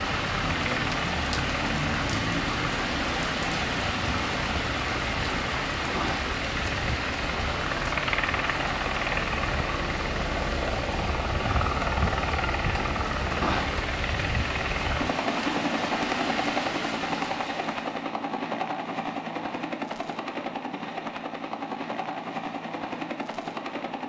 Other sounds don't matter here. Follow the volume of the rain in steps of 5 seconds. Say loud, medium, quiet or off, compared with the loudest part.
loud, loud, medium, medium, off.